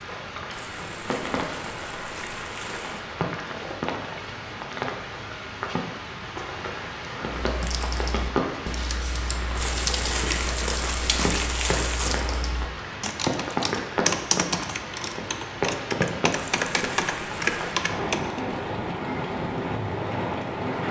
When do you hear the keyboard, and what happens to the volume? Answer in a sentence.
The keyboard can be heard from 7.5 to 18.4 s, getting louder.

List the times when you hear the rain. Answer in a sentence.
You can hear the rain from 0.0 to 20.8 s.